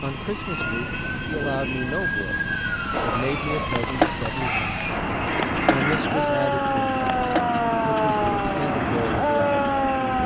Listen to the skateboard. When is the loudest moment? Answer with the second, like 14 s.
4 s.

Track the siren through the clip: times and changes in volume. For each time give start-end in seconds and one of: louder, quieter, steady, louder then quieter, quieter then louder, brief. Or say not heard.
0.0-10.2 louder.